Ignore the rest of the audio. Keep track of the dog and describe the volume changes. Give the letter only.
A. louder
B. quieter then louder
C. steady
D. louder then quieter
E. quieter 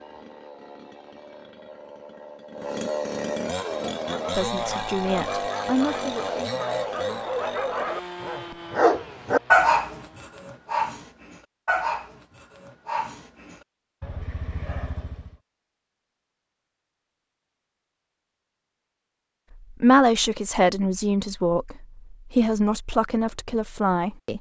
D.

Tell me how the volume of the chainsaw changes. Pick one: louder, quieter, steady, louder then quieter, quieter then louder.
louder then quieter.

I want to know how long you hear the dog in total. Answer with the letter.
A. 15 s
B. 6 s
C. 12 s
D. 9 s
C.